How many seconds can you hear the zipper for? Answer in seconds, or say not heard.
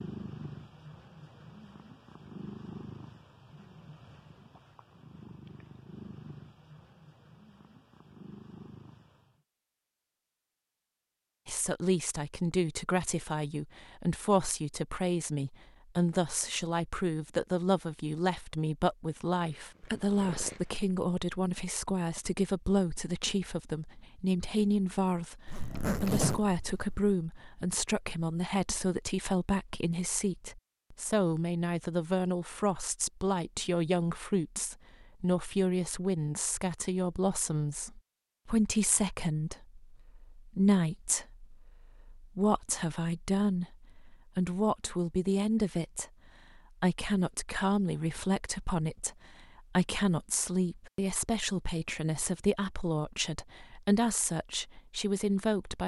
2 s.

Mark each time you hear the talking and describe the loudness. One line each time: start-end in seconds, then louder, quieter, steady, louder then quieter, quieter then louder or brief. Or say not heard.
11.4-55.8 steady.